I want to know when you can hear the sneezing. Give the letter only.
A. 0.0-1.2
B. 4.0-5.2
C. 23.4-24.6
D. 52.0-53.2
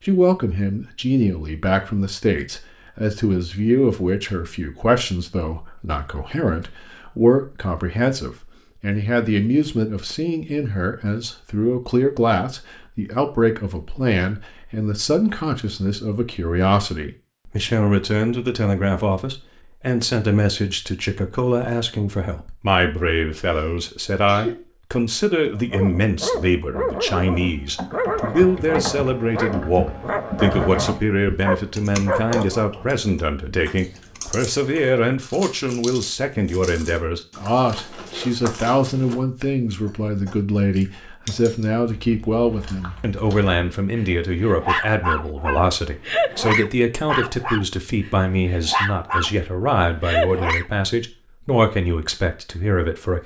C.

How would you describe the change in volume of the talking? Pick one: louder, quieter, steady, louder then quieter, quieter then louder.
steady.